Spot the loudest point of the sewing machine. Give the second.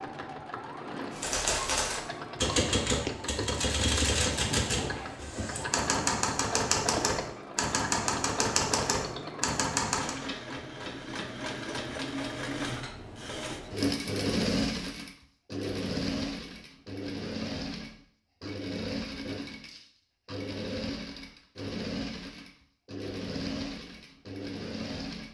14 s.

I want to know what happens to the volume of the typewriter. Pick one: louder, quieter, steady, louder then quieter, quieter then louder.
steady.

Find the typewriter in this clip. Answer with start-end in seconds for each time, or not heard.
1.1-10.2.